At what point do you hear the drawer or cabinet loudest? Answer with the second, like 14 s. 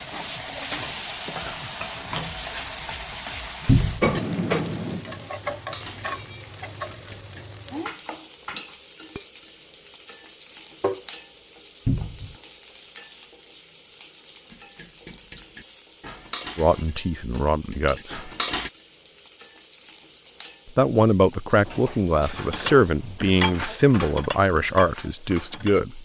4 s.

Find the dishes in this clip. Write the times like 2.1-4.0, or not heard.
4.0-9.3, 14.5-18.7, 22.4-25.8.